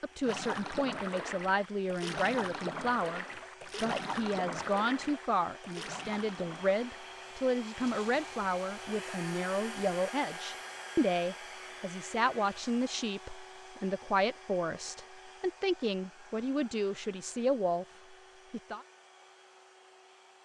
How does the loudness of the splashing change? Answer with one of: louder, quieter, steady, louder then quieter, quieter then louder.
quieter.